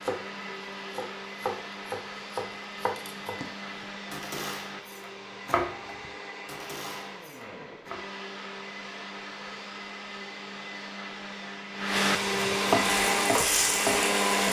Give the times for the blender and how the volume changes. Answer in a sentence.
You can hear the blender from 0.0 to 14.4 s, getting louder.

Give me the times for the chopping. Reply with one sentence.
The chopping can be heard from 0.0 to 8.0 s and from 12.2 to 14.4 s.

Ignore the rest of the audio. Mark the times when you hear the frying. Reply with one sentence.
You can hear the frying from 12.8 to 14.4 s.